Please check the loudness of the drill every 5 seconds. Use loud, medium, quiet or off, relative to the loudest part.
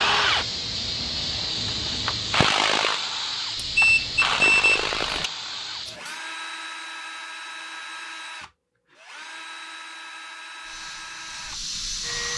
loud, medium, medium.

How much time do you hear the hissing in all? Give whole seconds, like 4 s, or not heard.
8 s.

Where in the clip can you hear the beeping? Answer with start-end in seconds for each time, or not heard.
3.5-5.3.